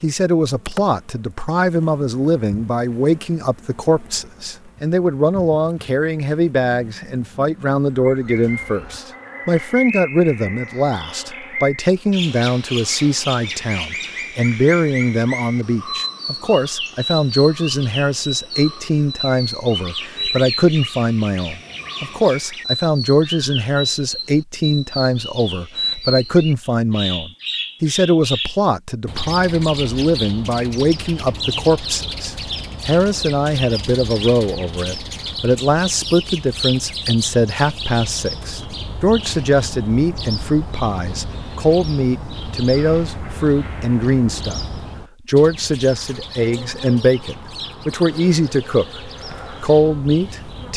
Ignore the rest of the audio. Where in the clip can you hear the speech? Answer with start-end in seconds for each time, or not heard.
0.0-44.6, 45.2-49.0, 49.6-50.7.